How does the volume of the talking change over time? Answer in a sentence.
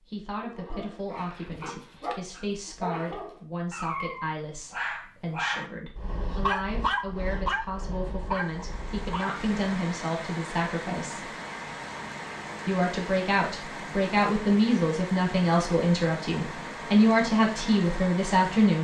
The volume of the talking goes up.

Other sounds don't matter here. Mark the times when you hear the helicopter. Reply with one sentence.
You can't hear the helicopter here.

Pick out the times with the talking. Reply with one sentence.
You can hear the talking from 0.1 to 11.3 s and from 12.7 to 18.7 s.